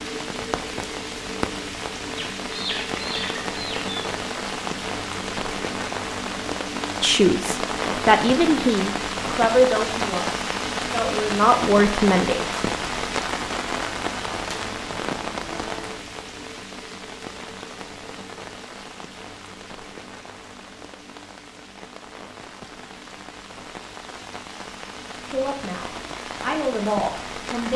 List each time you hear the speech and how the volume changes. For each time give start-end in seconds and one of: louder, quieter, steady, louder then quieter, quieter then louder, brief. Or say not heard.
7.0-12.5 quieter then louder
25.3-27.7 brief.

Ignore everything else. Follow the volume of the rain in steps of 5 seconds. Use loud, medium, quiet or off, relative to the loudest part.
loud, loud, loud, medium, quiet, medium.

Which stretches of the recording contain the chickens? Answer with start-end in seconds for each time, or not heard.
2.1-3.9.